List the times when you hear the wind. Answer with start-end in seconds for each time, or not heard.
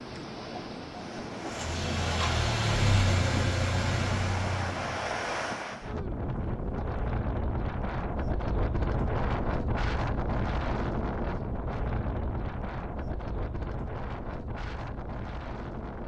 0.0-16.0.